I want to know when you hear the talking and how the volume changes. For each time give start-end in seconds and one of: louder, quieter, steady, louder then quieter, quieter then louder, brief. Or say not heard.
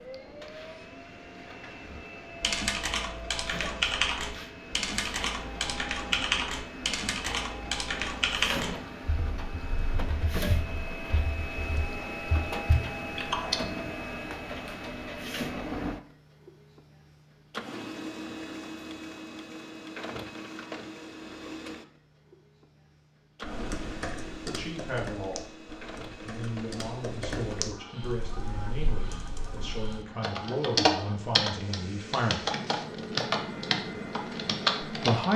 24.4-32.5 steady
34.9-35.3 brief.